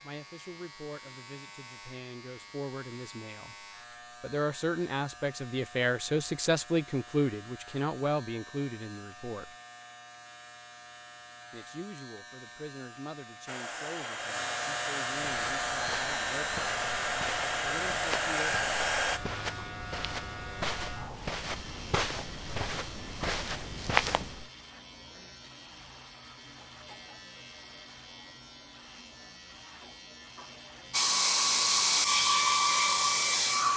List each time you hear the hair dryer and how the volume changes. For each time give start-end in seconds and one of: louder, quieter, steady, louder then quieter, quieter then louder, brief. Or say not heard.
13.4-19.2 louder
30.9-33.7 brief.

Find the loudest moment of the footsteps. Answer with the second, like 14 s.
24 s.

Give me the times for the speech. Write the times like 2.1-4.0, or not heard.
0.0-9.6, 11.5-16.6, 17.6-18.6.